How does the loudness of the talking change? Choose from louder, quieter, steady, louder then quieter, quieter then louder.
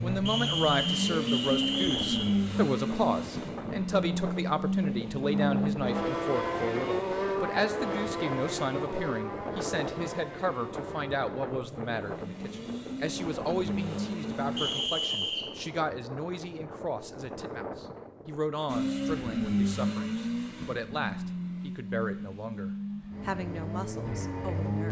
quieter.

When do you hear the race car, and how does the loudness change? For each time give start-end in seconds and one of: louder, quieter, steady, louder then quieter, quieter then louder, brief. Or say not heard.
0.0-14.8 quieter
18.6-24.8 quieter.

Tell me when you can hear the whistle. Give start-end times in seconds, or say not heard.
0.2-2.4, 14.6-15.5.